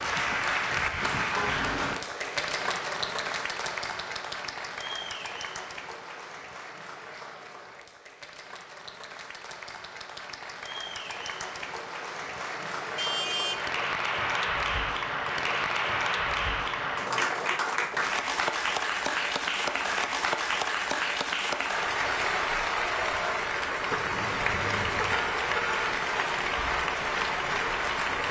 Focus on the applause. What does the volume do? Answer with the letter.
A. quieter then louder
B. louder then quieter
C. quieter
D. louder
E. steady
A.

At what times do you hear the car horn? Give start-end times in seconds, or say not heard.
1.4-2.0, 12.9-13.7, 23.9-25.9.